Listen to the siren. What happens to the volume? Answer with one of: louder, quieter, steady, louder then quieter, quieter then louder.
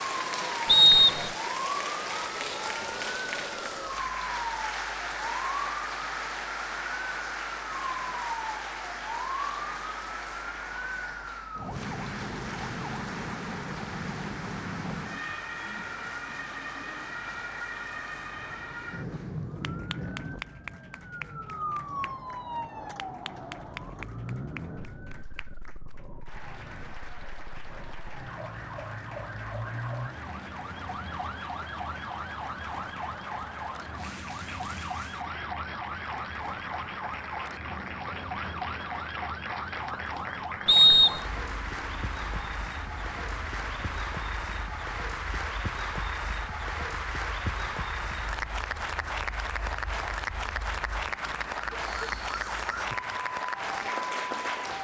quieter.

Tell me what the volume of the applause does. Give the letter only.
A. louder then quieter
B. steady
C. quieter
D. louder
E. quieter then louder
E.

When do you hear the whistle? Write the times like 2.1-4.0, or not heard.
0.7-1.3, 40.6-41.2.